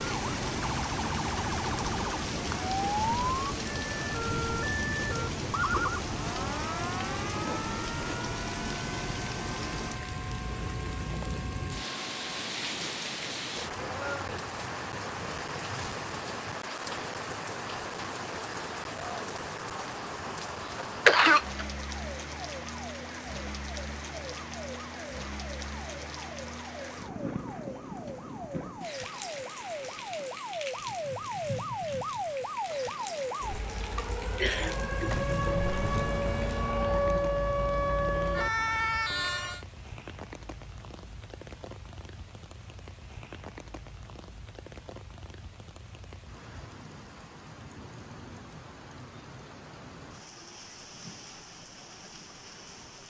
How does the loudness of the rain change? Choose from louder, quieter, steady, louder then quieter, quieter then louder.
quieter.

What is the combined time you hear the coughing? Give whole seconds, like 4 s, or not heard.
2 s.